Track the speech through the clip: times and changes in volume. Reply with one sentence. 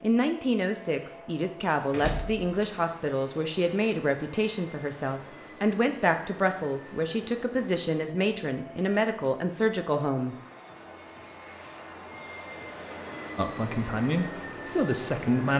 You can hear the speech from 0.0 to 10.3 s, at a steady volume; and briefly from 13.3 to 15.5 s.